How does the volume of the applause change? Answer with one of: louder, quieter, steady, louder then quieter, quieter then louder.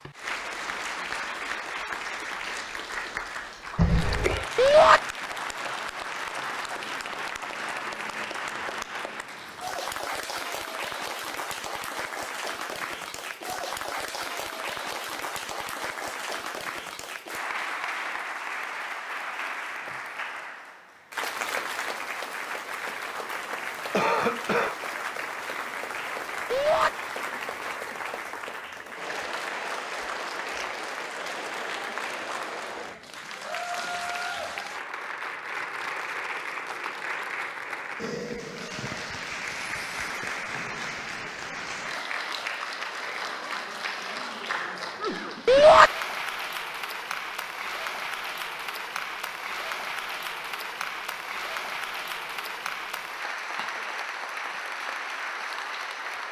steady.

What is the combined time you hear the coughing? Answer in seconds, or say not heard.
2 s.